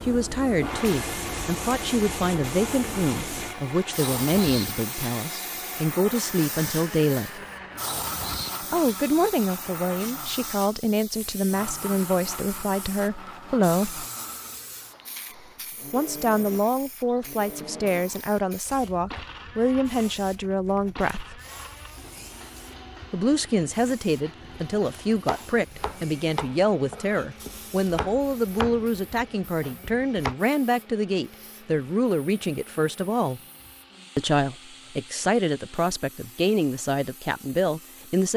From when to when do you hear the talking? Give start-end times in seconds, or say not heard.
0.0-7.4, 8.6-14.1, 15.9-21.4, 23.1-33.4, 34.1-38.3.